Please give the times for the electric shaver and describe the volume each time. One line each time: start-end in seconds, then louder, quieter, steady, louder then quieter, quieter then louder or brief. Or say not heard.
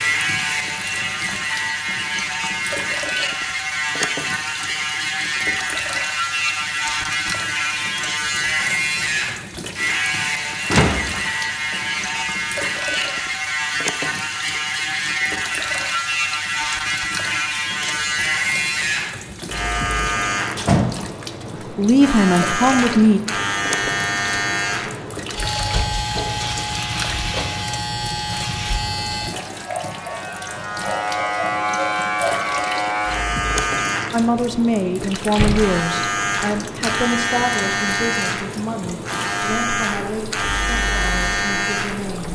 0.0-42.3 steady.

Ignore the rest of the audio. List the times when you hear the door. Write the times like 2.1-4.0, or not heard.
10.7-12.2, 20.1-21.4, 35.3-35.8.